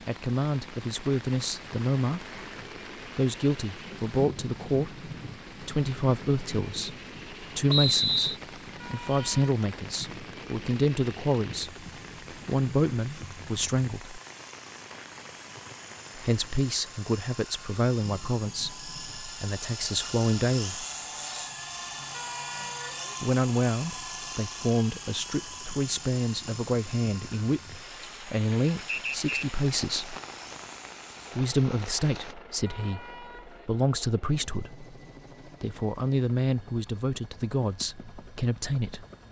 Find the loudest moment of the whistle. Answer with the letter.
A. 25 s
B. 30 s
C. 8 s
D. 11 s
C.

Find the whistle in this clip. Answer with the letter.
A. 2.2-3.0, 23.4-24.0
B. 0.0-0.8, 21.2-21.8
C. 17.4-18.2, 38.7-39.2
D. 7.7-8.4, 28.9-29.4
D.